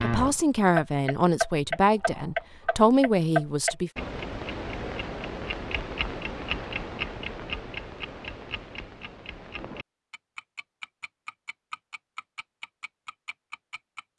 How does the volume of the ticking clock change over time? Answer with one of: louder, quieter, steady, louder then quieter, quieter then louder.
quieter.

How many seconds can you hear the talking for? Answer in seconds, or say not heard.
4 s.